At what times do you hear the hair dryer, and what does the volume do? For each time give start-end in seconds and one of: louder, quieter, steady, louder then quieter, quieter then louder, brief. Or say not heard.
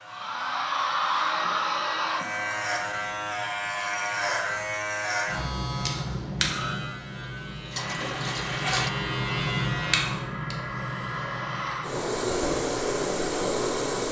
0.0-2.6 brief
7.8-14.0 louder.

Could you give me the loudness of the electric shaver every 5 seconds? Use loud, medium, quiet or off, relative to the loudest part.
loud, loud, medium.